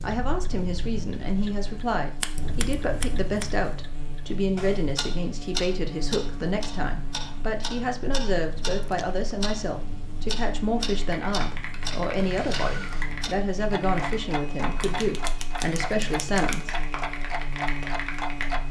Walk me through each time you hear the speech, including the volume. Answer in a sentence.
You can hear the speech from 0.0 to 16.8 s, at a steady volume.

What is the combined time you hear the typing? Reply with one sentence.
The typing can be heard for 8 seconds in total.